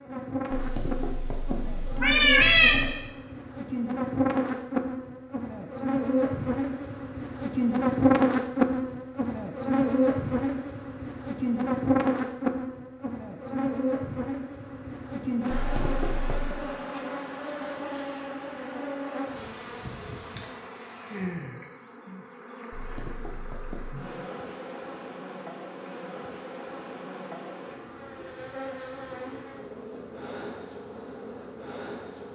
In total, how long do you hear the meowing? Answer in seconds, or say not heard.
5 s.